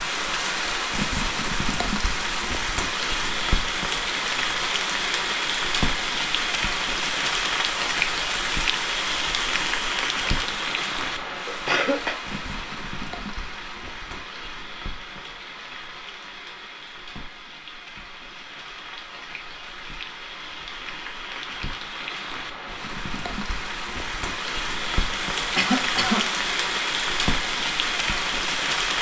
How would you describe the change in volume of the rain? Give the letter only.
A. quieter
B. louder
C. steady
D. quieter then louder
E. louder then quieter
D.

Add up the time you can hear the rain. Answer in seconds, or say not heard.
29 s.